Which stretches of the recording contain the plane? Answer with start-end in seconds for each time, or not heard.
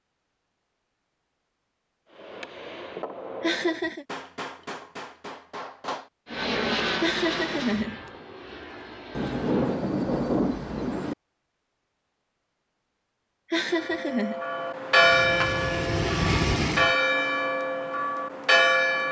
6.2-9.8, 14.9-16.9.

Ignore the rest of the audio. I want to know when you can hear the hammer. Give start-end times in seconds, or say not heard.
2.1-6.1.